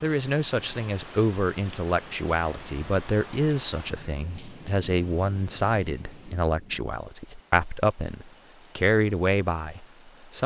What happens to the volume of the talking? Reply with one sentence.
The volume of the talking stays about the same.